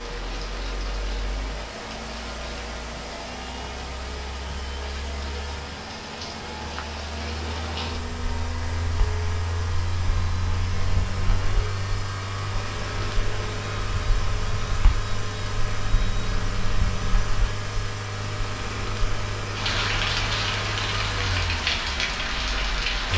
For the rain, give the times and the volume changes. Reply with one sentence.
You can hear the rain from 0.0 to 23.1 s, getting louder.